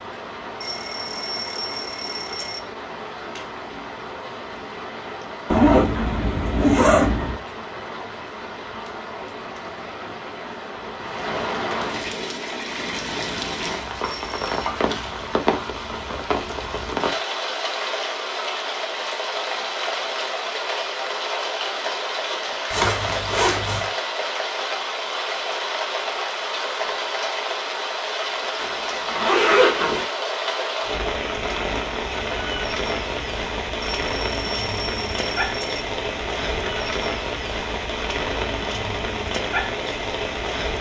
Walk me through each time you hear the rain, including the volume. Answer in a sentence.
The rain can be heard from 0.0 to 40.7 s, getting louder.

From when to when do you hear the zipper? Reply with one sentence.
You can hear the zipper from 5.5 to 7.3 s, from 22.7 to 23.9 s and from 28.6 to 30.1 s.